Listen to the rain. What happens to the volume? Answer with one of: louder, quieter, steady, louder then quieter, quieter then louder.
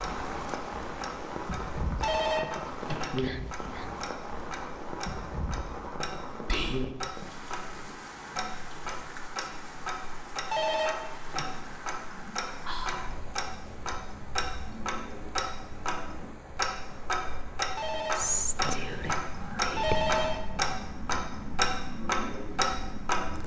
quieter.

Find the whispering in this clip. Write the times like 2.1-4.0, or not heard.
3.0-4.0, 6.5-7.0, 12.7-13.2, 18.1-20.1.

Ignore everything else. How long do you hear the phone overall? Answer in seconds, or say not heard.
5 s.